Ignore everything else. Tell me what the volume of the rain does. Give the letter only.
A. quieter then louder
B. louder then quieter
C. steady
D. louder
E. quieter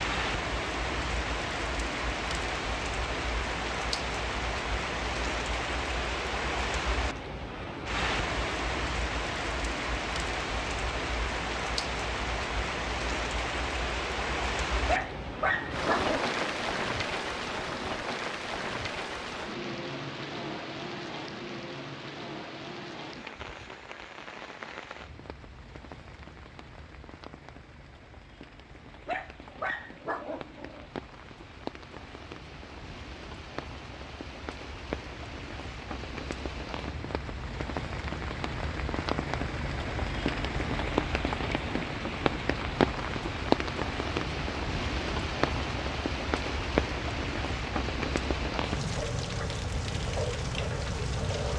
A.